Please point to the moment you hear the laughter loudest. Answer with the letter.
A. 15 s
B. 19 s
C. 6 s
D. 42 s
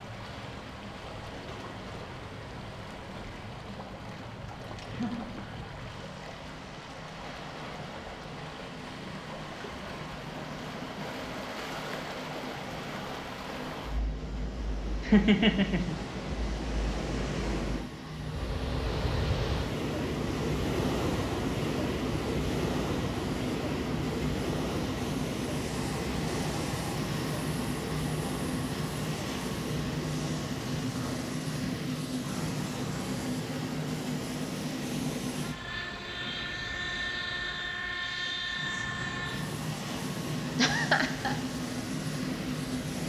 A.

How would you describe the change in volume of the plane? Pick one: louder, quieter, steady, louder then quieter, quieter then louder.
louder.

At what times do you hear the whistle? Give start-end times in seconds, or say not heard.
not heard.